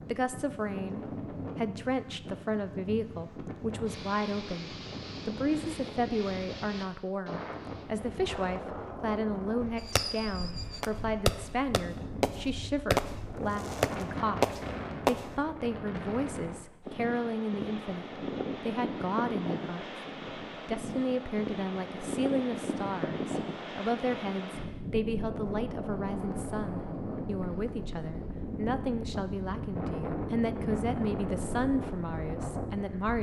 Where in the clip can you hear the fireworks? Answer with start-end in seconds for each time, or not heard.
9.8-15.2.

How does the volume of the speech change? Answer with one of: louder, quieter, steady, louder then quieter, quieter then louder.
steady.